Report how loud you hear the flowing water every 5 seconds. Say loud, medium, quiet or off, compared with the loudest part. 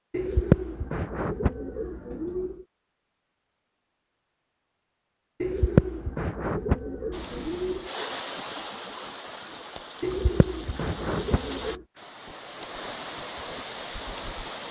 off, loud, loud.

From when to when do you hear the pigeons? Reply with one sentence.
The pigeons can be heard from 0.1 to 2.6 s, from 5.4 to 7.9 s and from 10.0 to 11.8 s.